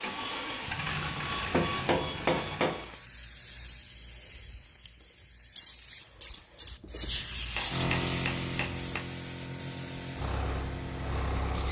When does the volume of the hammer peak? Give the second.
2 s.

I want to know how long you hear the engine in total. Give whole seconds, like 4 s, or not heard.
4 s.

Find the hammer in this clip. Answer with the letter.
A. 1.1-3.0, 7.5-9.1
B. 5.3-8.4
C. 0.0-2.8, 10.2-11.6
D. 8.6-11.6
A.